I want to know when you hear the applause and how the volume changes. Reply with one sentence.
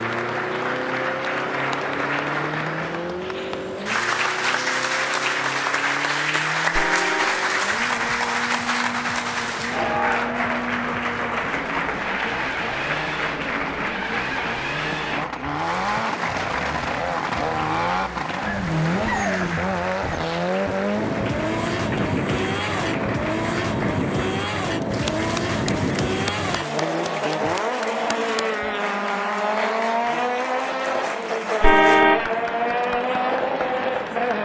The applause can be heard from 0.0 to 34.4 s, getting quieter.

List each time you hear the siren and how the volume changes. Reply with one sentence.
You can't hear the siren here.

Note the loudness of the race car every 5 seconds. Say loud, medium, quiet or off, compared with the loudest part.
medium, medium, medium, loud, loud, loud, loud.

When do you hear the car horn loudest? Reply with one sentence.
The volume of the car horn peaks at 32 seconds.